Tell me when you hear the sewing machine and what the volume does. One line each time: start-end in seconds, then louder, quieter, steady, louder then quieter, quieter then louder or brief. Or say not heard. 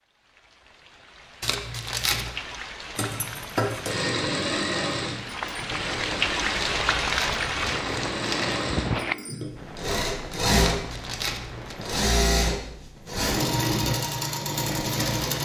3.0-15.4 quieter then louder.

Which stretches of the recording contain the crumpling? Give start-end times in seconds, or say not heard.
1.4-2.4, 6.5-8.6, 10.7-11.8.